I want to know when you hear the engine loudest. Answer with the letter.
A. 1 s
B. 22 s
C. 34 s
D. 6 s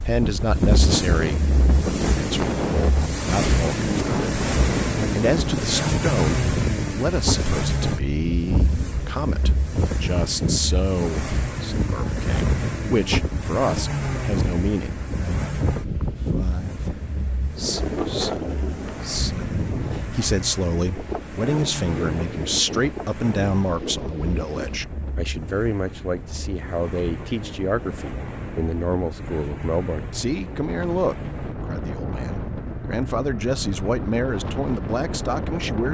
D.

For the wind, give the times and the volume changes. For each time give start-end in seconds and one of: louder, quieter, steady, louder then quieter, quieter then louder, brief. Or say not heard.
0.0-35.9 quieter.